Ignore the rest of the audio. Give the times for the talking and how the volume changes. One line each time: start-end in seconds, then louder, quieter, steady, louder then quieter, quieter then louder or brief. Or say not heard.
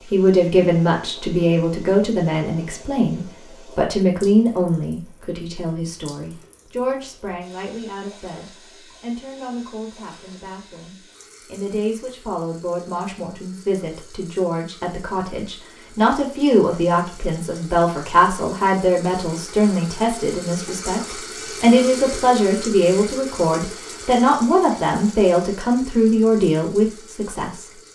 0.1-27.7 quieter then louder.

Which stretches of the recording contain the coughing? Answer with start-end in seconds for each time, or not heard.
not heard.